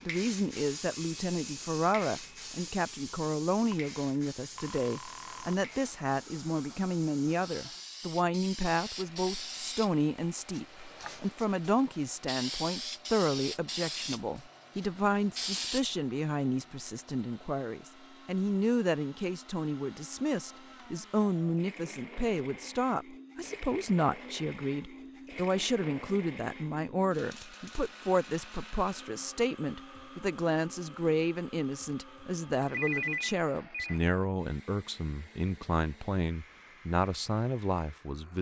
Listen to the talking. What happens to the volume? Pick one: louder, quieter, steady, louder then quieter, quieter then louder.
steady.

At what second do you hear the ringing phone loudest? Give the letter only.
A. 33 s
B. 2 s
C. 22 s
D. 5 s
A.